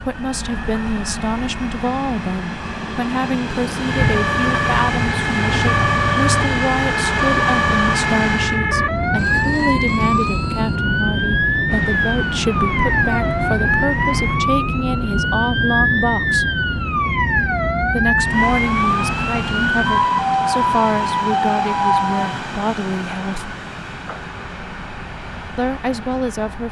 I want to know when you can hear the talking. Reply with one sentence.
The talking can be heard from 0.0 to 16.4 s, from 17.9 to 23.6 s and from 25.6 to 26.6 s.